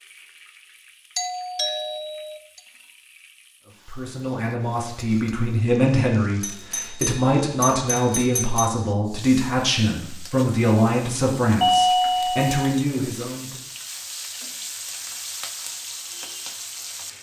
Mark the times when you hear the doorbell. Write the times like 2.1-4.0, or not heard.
1.1-2.6, 6.4-8.7, 11.6-12.8.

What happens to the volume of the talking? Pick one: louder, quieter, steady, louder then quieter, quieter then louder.
steady.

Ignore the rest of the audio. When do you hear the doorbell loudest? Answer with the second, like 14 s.
12 s.